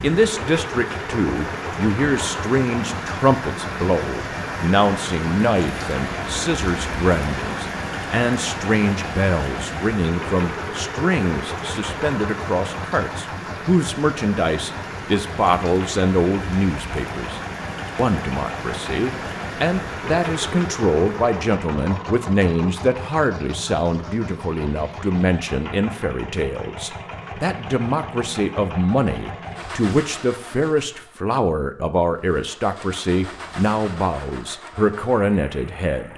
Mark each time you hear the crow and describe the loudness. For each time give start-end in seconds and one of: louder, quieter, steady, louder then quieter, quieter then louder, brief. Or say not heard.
not heard.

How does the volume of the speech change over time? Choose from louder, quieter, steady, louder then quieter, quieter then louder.
steady.